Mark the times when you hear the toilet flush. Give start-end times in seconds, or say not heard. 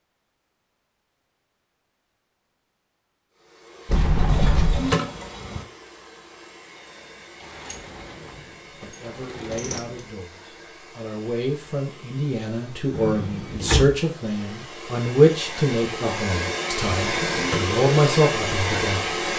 4.2-5.7, 17.1-17.7.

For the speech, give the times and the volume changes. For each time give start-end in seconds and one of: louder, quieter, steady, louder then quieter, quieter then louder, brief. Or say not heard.
8.3-19.1 louder.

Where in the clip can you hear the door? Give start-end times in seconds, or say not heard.
3.9-4.9, 7.4-10.1, 12.9-13.9.